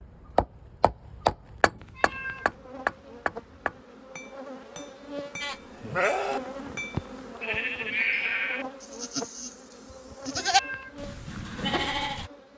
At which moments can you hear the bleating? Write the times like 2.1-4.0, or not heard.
5.4-12.3.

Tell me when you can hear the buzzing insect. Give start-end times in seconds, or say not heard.
2.0-12.5.